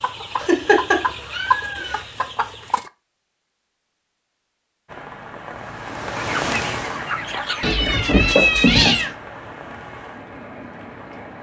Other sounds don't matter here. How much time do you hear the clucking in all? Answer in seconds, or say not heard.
5 s.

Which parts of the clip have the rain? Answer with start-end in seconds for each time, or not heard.
4.8-11.3.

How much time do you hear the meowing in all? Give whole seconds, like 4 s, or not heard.
3 s.